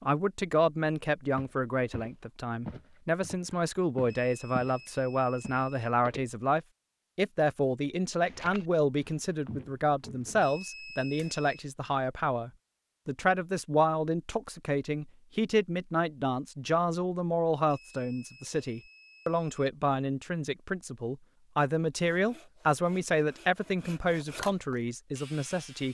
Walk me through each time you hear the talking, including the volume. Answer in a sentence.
The talking can be heard from 0.0 to 25.8 s, at a steady volume.